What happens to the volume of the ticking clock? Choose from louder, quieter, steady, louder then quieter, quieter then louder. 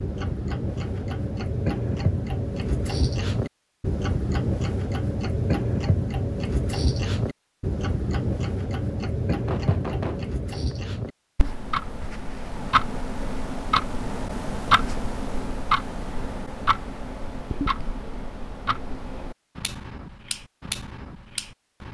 quieter.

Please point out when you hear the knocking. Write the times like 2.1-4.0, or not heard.
9.4-10.8.